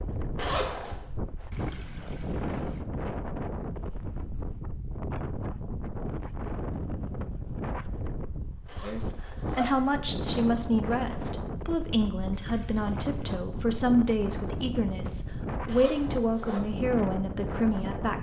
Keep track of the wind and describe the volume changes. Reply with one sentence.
The volume of the wind stays about the same.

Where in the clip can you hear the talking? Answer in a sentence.
The talking can be heard from 8.8 to 18.1 s.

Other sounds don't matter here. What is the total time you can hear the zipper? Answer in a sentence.
The zipper can be heard for 3 seconds in total.